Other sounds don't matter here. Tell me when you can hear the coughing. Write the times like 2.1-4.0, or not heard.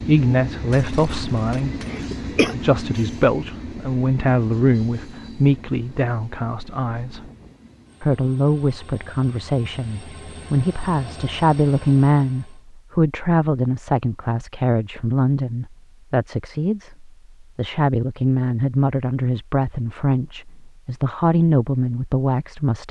0.7-2.5.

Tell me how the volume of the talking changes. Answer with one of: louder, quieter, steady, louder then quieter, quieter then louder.
steady.